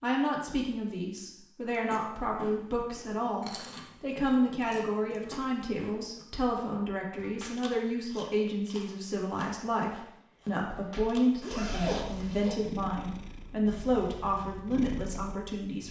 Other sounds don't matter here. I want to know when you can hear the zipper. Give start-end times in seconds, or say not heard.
11.4-12.6.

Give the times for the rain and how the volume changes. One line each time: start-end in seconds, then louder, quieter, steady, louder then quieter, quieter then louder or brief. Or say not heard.
not heard.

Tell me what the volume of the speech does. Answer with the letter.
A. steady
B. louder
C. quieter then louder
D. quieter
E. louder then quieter
A.